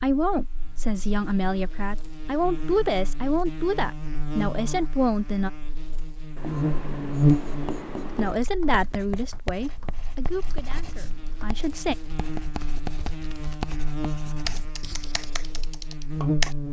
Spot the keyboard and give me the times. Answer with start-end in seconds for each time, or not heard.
8.2-16.6.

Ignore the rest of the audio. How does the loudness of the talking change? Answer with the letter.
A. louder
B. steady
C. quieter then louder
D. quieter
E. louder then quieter
D.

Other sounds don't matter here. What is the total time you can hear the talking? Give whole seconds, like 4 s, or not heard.
9 s.